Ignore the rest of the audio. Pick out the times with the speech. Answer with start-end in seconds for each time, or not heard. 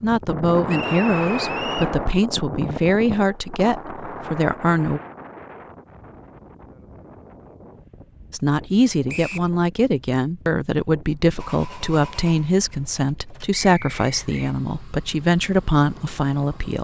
0.0-5.0, 8.3-16.7.